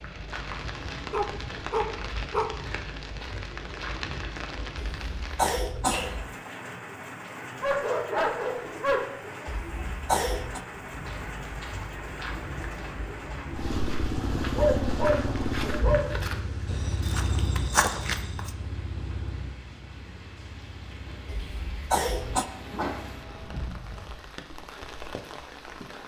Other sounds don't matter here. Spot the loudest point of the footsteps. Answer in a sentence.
The loudest moment of the footsteps is at 18 seconds.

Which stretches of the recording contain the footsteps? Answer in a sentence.
You can hear the footsteps from 0.0 to 5.3 s and from 10.8 to 18.6 s.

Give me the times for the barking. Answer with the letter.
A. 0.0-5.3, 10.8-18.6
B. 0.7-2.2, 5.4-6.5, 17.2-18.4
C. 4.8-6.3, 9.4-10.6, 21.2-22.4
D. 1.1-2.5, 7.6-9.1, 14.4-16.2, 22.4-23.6
D.